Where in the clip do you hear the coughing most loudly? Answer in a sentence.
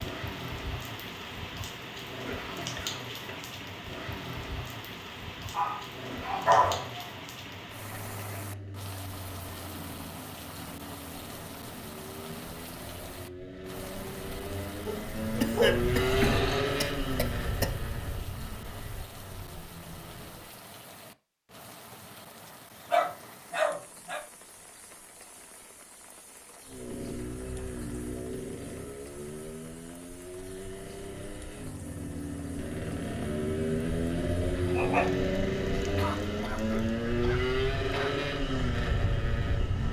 The volume of the coughing peaks at 16 seconds.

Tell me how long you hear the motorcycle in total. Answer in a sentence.
The motorcycle can be heard for 34 seconds in total.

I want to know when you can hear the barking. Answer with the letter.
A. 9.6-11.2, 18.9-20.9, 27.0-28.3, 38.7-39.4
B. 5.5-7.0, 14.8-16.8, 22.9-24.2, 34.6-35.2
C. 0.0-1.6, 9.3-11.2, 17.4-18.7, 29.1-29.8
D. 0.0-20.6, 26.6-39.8
B.